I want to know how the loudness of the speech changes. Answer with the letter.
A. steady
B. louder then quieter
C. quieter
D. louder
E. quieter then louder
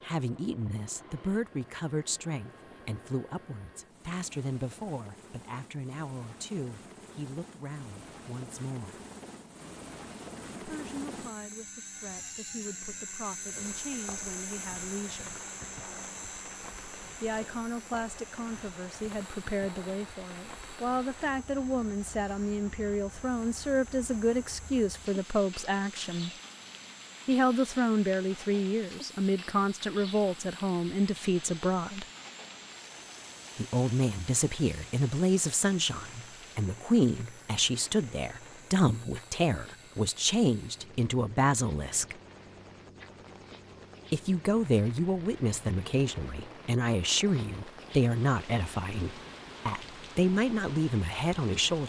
D.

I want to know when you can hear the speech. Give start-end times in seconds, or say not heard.
0.0-9.0, 10.6-15.3, 17.2-26.3, 27.2-32.0, 33.5-42.1, 44.1-51.8.